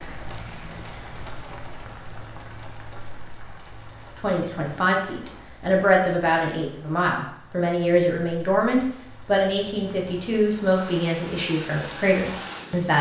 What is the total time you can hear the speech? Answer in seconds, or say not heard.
9 s.